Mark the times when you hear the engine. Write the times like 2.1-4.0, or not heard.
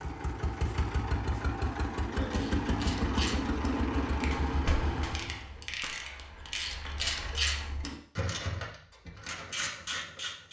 0.0-5.5.